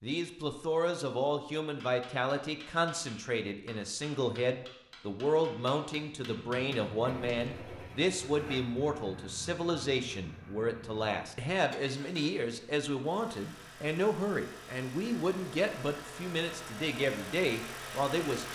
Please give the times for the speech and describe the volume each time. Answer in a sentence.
The speech can be heard from 0.0 to 18.5 s, at a steady volume.